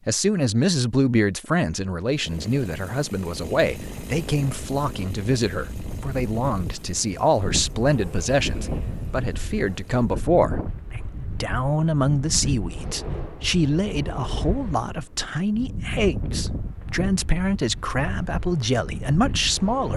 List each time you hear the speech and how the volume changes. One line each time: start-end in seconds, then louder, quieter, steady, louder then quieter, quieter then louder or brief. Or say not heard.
0.1-19.9 steady.